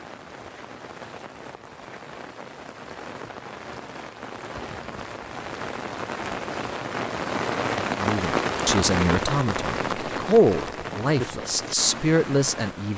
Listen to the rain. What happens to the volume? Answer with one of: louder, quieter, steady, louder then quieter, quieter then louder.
louder then quieter.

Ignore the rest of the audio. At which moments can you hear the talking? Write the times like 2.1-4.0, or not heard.
8.0-12.9.